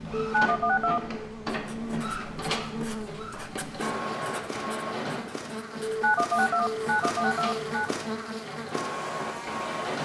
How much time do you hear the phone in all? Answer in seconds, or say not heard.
3 s.